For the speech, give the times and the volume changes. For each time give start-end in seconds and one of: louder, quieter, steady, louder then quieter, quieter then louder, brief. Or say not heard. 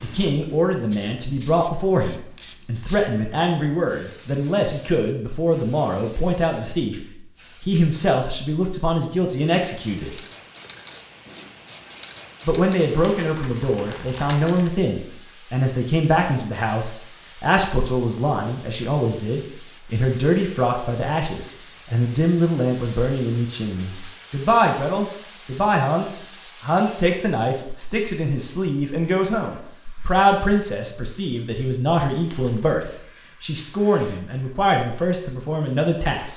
0.0-10.2 steady
12.4-36.3 steady.